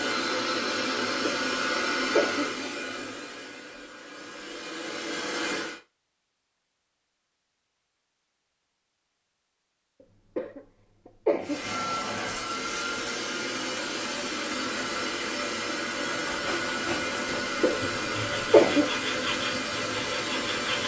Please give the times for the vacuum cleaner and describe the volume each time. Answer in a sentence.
The vacuum cleaner can be heard from 0.0 to 5.8 s, getting quieter then louder; and from 11.4 to 20.8 s, at a steady volume.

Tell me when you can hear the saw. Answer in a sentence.
The saw can be heard from 16.0 to 20.8 s.